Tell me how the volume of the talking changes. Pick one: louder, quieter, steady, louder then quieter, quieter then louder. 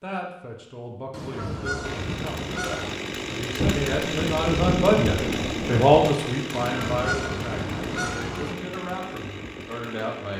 louder then quieter.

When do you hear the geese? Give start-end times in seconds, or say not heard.
1.1-3.0, 6.5-8.6.